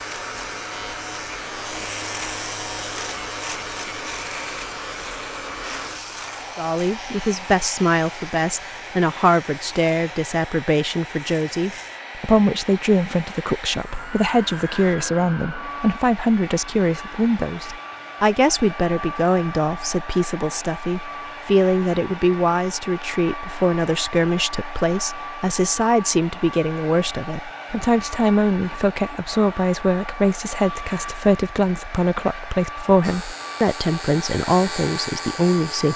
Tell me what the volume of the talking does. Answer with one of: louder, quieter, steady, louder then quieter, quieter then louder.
steady.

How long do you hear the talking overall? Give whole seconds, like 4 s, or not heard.
29 s.